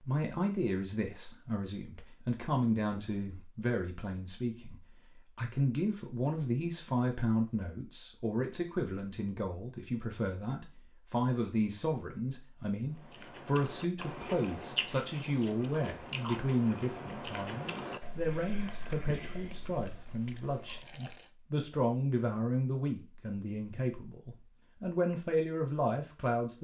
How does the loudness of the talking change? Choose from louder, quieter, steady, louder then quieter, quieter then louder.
steady.